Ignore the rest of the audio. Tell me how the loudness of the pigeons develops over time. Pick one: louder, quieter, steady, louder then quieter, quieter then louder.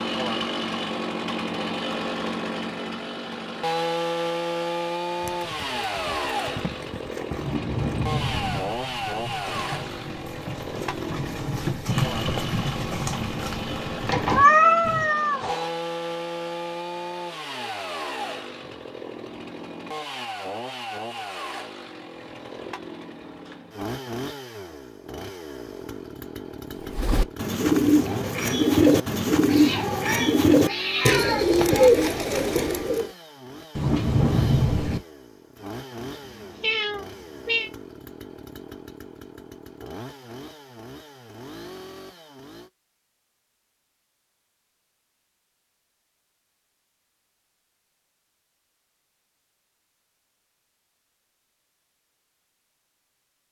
steady.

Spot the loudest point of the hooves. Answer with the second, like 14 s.
12 s.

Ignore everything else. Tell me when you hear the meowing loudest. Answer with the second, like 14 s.
15 s.